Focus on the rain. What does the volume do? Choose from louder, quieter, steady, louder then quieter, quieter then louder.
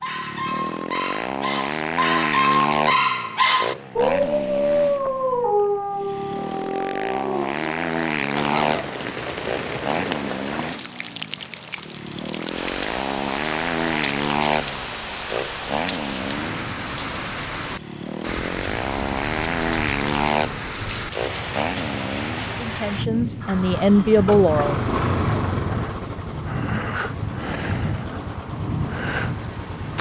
steady.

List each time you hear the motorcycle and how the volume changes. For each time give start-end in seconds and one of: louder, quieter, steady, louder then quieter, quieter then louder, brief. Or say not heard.
0.0-29.9 steady.